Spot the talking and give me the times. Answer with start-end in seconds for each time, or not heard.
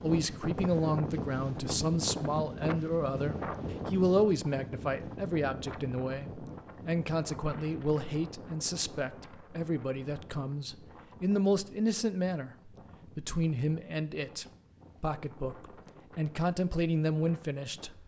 0.0-17.9.